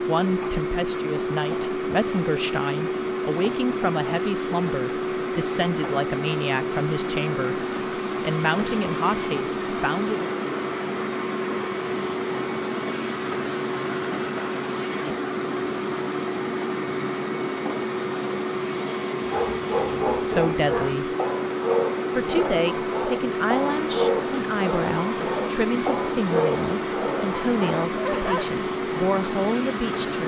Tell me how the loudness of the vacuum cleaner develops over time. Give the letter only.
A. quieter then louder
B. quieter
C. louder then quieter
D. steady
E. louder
D.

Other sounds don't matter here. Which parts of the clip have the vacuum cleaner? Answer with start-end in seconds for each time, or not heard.
0.0-30.2.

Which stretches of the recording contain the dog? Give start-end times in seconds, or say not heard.
19.2-28.4.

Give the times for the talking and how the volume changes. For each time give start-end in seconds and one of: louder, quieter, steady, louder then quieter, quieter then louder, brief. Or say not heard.
0.1-10.2 steady
19.8-21.1 brief
22.1-30.2 steady.